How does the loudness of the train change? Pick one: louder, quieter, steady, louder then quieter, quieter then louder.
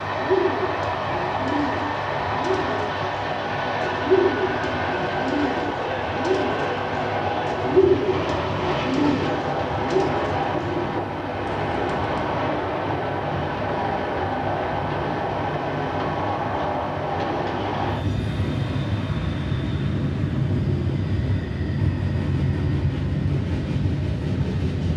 steady.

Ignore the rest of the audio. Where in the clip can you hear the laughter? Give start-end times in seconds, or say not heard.
not heard.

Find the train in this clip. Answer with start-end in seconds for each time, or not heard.
0.0-24.9.